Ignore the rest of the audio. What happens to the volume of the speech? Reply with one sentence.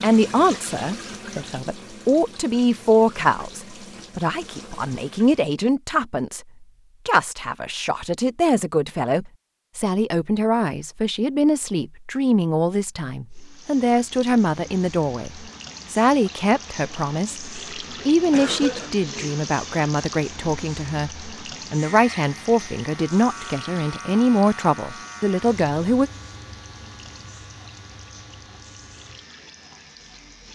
The loudness of the speech stays about the same.